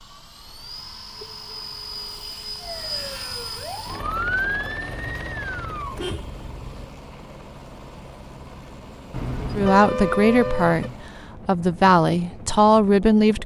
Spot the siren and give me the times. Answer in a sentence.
You can hear the siren from 2.6 to 6.0 s.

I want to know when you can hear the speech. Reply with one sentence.
The speech can be heard from 9.5 to 13.4 s.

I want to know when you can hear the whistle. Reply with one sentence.
You can't hear the whistle here.